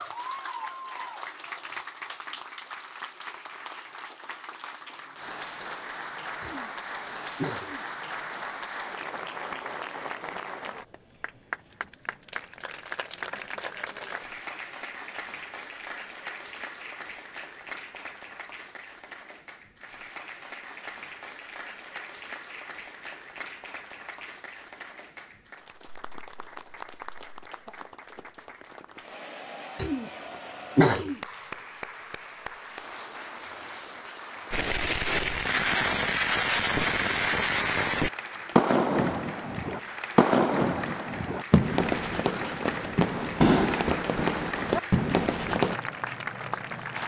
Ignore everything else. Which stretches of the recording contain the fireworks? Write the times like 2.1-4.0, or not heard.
34.5-45.8.